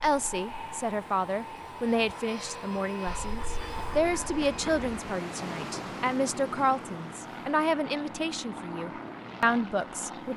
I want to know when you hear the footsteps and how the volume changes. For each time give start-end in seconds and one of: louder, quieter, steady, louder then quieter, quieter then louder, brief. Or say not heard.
not heard.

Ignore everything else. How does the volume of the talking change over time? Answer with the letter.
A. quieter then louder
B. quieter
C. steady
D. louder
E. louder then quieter
C.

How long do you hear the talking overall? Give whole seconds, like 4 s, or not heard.
10 s.